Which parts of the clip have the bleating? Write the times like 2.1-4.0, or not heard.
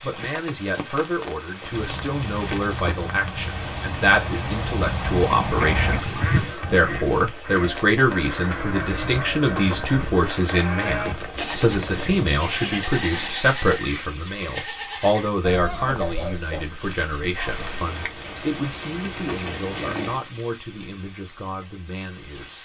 8.3-16.8.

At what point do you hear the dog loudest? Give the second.
16 s.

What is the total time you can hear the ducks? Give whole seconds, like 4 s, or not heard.
9 s.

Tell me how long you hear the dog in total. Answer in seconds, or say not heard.
2 s.